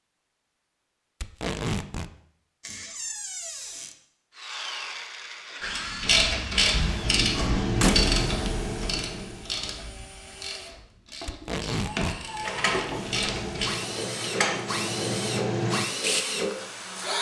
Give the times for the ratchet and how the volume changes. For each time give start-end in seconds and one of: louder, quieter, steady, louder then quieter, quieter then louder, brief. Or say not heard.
5.8-13.7 quieter then louder.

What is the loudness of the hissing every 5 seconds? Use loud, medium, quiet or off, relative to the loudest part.
off, loud, medium, loud.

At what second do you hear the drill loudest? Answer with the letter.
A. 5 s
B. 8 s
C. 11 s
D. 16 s
D.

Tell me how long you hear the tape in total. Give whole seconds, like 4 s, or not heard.
2 s.